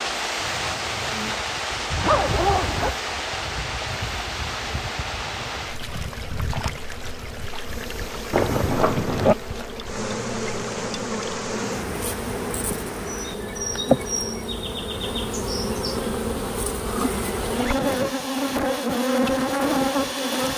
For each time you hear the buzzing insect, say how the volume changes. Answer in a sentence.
The buzzing insect can be heard from 0.0 to 20.5 s, getting louder.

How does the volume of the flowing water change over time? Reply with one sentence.
The loudness of the flowing water goes down.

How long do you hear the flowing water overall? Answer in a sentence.
The flowing water can be heard for 13 seconds in total.